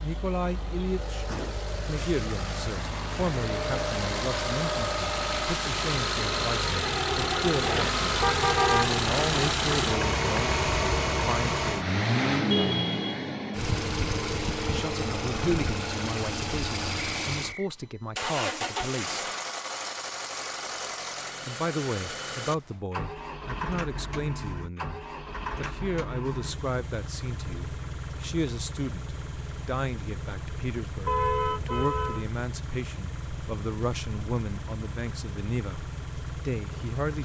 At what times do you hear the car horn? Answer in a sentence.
The car horn can be heard from 8.2 to 8.9 s, from 12.5 to 13.3 s and from 31.1 to 32.2 s.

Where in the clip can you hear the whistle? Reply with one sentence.
You can hear the whistle from 16.9 to 17.7 s.